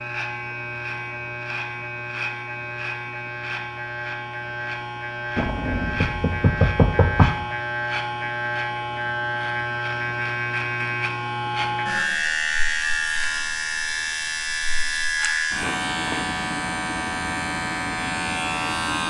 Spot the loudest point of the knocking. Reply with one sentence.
The volume of the knocking peaks at 7 seconds.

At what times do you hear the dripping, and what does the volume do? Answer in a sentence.
The dripping can't be heard in this clip.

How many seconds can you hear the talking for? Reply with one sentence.
You can't hear the talking here.